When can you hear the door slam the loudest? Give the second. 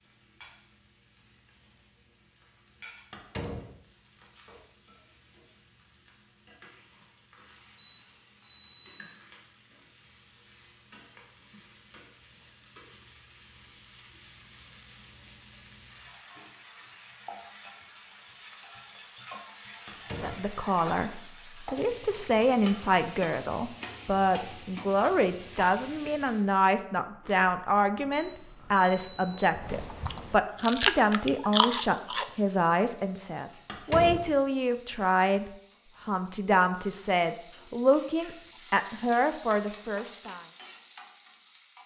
34 s.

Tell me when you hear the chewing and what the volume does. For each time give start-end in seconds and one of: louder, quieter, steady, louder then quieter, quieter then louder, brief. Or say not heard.
27.0-32.2 louder.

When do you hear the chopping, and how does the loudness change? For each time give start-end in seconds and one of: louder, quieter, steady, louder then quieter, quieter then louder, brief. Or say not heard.
not heard.